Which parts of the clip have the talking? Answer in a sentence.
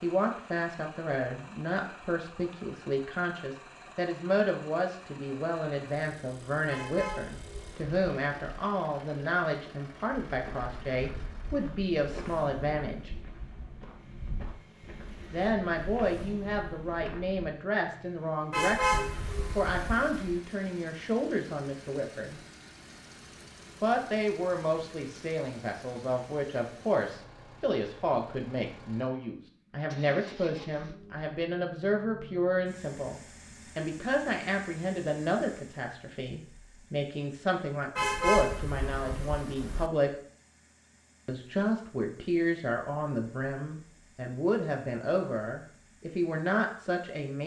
The talking can be heard from 0.0 to 13.1 s, from 15.3 to 22.4 s, from 23.8 to 40.1 s and from 41.2 to 47.4 s.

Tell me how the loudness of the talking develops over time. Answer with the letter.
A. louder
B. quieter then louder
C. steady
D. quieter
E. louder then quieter
C.